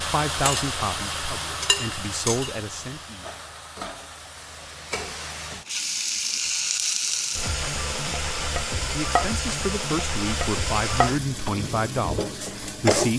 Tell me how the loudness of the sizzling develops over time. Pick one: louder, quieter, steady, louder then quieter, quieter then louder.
quieter then louder.